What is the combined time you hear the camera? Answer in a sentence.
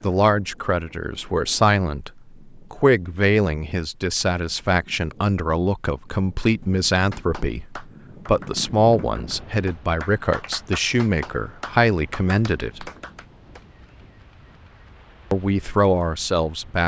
You can hear the camera for 2 seconds altogether.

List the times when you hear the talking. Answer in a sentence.
The talking can be heard from 0.0 to 12.9 s and from 15.3 to 16.8 s.